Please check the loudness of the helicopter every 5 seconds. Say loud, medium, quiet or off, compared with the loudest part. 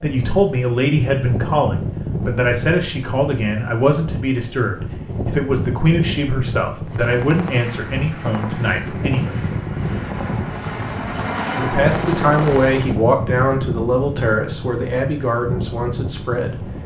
off, medium, loud, off.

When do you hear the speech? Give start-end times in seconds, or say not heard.
0.0-9.4, 11.6-16.6.